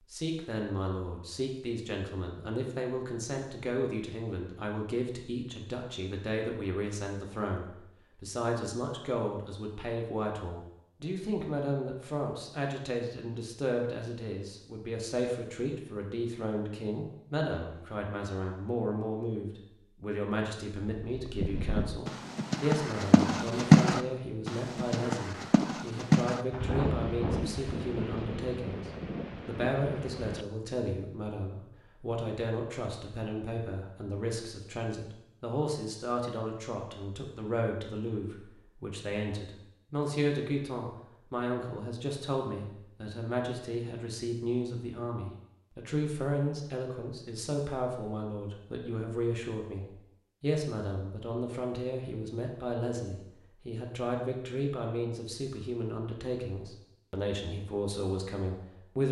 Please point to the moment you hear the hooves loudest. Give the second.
24 s.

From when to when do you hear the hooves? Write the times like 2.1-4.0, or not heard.
20.9-28.4.